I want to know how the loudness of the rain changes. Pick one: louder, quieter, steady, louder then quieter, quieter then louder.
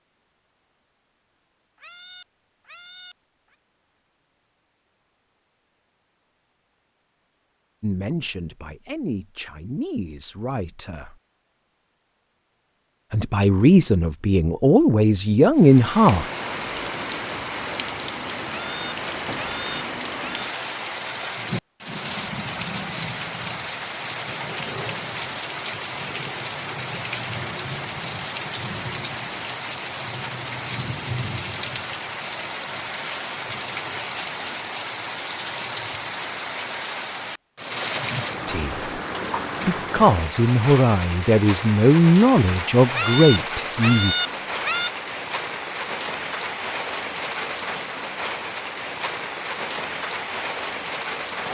steady.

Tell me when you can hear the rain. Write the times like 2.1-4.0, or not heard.
15.6-51.4.